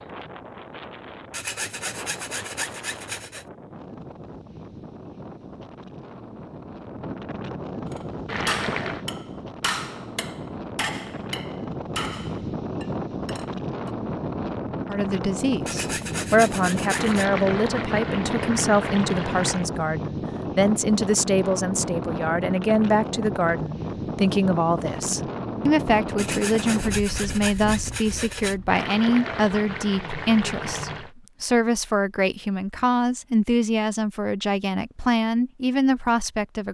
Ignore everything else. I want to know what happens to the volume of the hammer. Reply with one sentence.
The loudness of the hammer goes down.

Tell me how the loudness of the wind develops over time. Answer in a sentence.
The loudness of the wind goes up.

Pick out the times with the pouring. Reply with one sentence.
The pouring can be heard from 8.2 to 9.1 s, from 16.9 to 19.7 s and from 28.6 to 31.1 s.